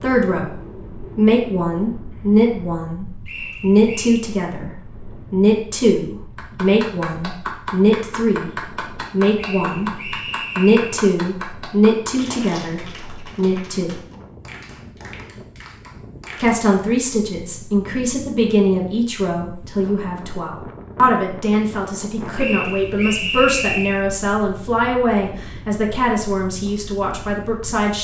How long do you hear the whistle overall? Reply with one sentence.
The whistle can be heard for 4 seconds in total.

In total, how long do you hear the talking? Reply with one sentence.
The talking can be heard for 24 seconds in total.